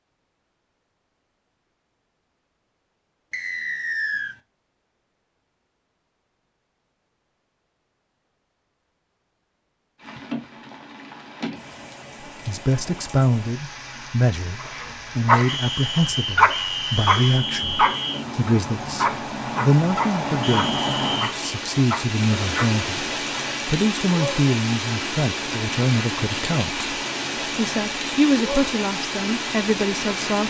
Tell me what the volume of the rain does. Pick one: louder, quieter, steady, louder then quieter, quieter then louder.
louder.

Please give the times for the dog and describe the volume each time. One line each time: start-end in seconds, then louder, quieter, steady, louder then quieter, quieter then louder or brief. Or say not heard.
14.6-23.4 quieter.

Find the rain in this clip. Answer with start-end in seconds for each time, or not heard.
9.9-30.4.